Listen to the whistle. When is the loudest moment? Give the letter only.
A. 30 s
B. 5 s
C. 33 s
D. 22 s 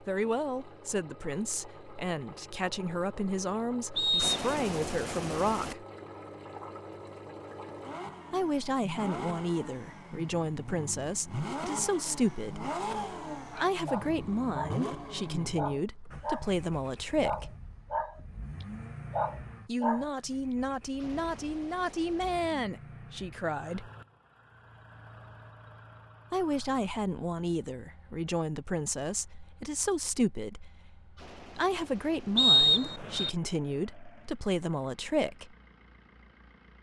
C.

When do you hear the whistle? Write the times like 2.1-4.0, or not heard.
4.0-4.5, 32.4-33.3.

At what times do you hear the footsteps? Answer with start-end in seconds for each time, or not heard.
not heard.